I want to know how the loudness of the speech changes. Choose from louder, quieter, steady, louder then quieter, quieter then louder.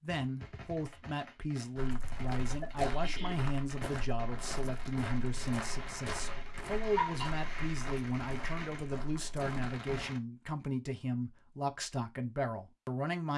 steady.